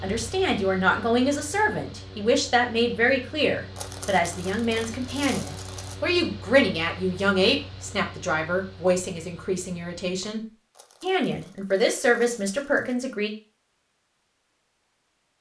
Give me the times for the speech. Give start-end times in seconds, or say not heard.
0.0-10.4, 11.0-13.3.